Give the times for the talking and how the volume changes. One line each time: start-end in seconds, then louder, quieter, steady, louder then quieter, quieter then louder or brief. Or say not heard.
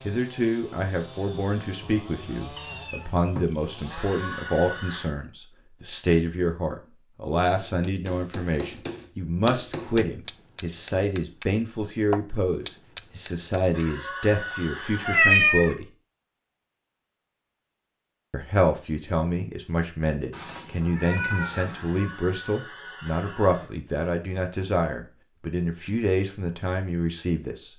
0.1-15.8 steady
18.3-27.7 steady.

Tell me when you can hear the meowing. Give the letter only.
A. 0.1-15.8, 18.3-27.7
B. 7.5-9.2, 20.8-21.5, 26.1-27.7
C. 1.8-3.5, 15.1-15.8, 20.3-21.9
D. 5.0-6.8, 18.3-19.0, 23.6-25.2
C.